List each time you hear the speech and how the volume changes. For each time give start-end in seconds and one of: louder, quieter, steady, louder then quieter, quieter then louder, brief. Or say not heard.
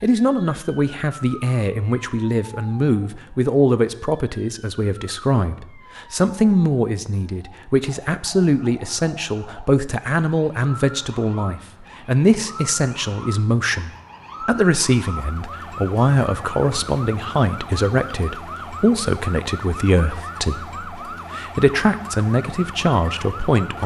0.0-23.8 steady.